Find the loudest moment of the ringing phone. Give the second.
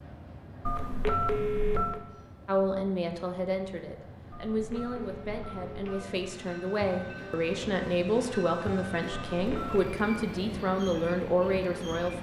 1 s.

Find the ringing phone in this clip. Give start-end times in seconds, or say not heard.
0.7-2.0, 4.3-6.3, 9.1-9.9.